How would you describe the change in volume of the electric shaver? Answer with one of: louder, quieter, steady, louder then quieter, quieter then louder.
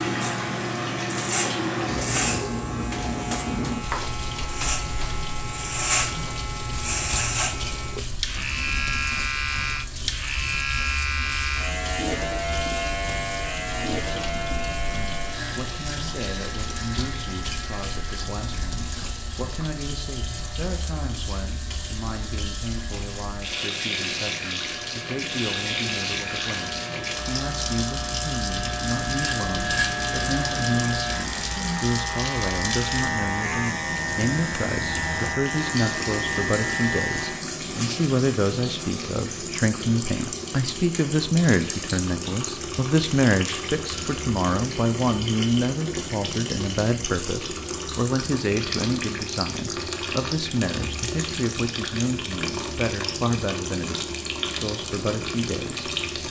quieter then louder.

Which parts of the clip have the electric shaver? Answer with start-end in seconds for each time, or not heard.
0.0-37.5.